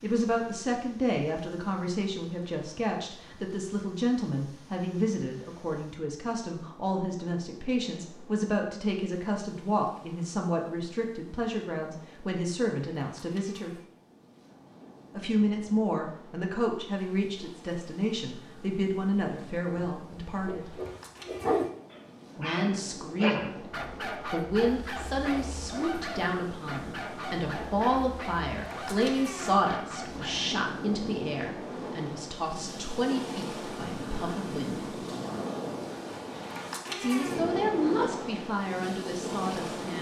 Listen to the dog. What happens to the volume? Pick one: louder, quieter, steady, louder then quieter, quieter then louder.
quieter.